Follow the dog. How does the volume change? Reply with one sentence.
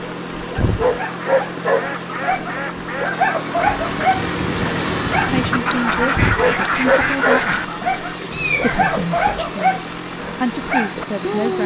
The loudness of the dog stays about the same.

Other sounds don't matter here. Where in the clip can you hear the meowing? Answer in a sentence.
You can hear the meowing from 8.3 to 9.1 s.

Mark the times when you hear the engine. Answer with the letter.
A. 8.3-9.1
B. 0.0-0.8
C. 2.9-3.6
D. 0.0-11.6
D.